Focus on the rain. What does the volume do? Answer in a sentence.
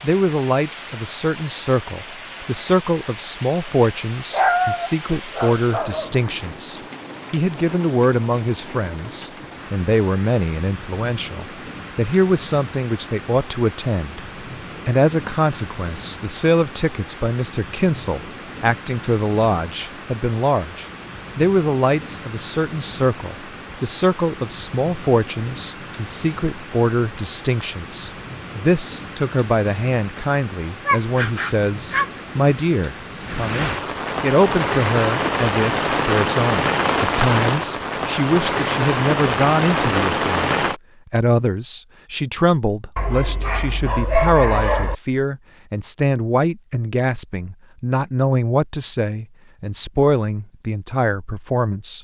The loudness of the rain goes up.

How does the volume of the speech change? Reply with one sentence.
The volume of the speech stays about the same.